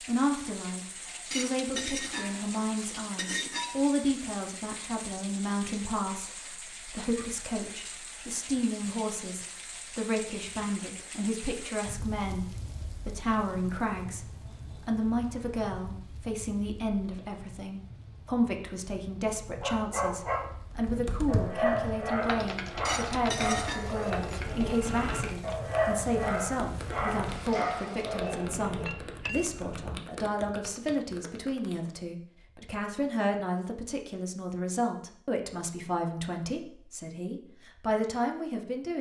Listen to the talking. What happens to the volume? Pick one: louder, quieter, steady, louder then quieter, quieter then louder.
steady.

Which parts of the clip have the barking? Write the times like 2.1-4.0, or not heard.
19.6-29.2.